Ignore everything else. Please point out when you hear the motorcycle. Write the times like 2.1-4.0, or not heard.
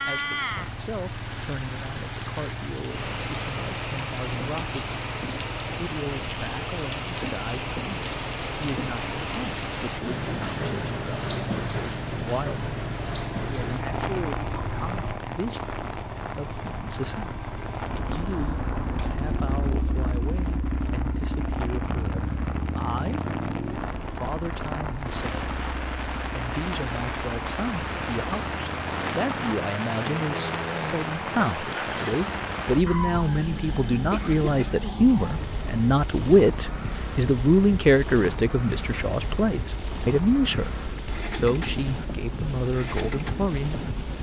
0.0-44.1.